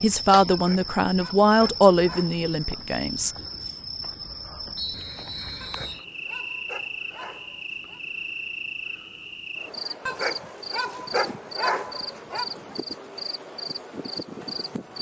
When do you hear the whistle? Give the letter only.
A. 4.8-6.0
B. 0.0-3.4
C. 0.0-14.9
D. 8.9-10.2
A.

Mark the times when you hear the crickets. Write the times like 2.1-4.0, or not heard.
0.0-14.9.